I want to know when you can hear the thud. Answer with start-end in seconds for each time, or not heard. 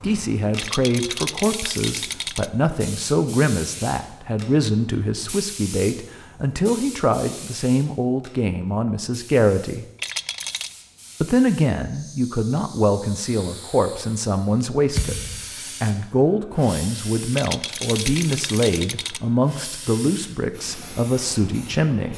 14.9-15.4.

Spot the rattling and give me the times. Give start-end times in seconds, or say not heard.
0.6-2.5, 9.9-10.7, 17.3-19.2.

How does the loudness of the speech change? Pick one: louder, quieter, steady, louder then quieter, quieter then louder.
steady.